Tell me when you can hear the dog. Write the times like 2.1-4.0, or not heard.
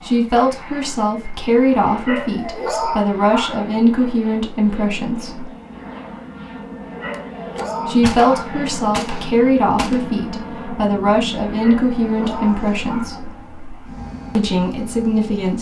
2.0-3.6, 7.0-8.6, 11.6-13.2.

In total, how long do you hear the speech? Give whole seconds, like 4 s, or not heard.
12 s.